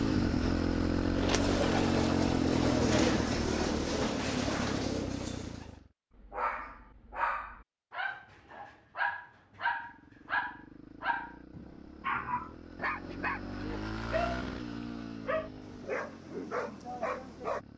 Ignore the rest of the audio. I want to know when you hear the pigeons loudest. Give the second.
3 s.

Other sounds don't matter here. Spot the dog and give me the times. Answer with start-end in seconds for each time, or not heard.
6.2-14.4, 15.2-17.6.